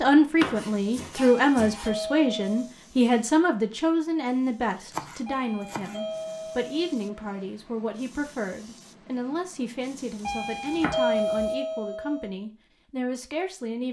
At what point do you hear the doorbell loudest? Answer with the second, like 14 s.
11 s.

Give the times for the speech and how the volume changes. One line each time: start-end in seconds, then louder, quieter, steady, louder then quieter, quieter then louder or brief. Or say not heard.
0.0-13.8 quieter.